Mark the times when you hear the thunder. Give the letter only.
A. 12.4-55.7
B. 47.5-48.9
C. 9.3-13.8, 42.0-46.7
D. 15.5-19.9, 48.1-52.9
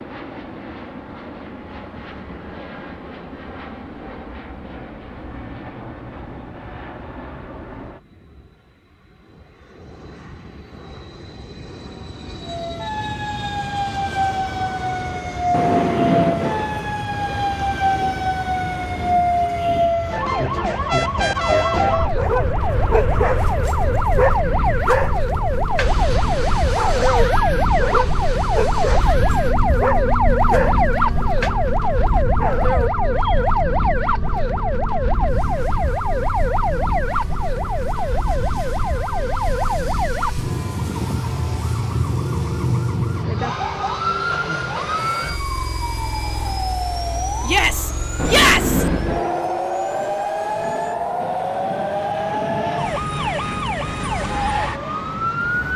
D.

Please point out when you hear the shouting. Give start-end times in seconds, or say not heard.
47.5-48.9.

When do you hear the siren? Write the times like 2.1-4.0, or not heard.
12.4-55.7.